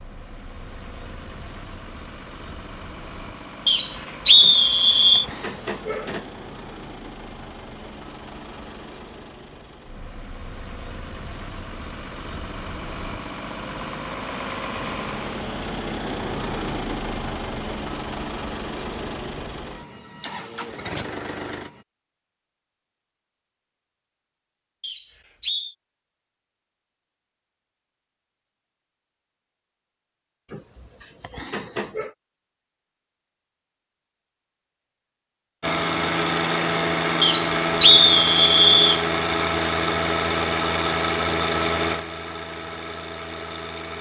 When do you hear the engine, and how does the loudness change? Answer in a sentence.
The engine can be heard from 0.0 to 21.9 s, getting louder; and from 35.6 to 43.9 s, getting quieter.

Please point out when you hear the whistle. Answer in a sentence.
The whistle can be heard from 3.6 to 5.2 s, from 24.8 to 25.8 s and from 37.2 to 39.0 s.